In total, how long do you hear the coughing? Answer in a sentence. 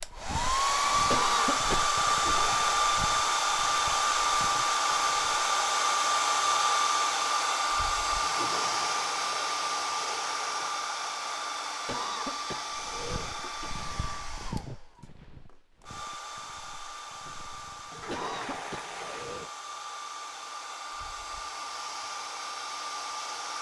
The coughing can be heard for 4 seconds in total.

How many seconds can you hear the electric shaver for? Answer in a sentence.
You can't hear the electric shaver here.